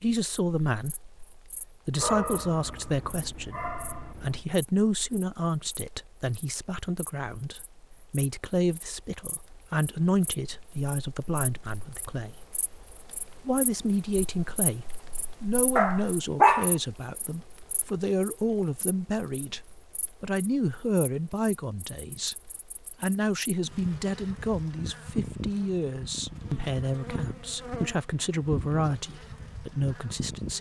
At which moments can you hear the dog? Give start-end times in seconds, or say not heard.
1.9-4.5, 15.8-16.7.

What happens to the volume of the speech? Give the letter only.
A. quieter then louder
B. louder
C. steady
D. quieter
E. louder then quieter
C.